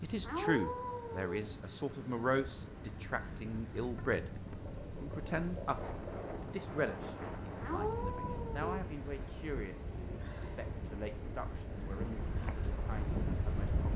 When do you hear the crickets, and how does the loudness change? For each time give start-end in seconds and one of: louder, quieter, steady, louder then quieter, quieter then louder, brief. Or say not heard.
0.0-13.9 steady.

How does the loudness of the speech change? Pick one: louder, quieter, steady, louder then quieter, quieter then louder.
quieter.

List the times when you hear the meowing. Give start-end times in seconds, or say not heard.
0.2-1.5, 7.6-8.7.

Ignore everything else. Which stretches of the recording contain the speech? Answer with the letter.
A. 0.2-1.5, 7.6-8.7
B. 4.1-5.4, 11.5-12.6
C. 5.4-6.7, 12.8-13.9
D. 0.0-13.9
D.